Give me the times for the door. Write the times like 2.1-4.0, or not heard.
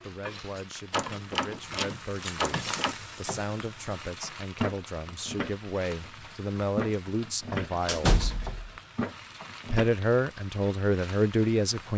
0.9-3.0, 7.8-8.7.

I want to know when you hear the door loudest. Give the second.
8 s.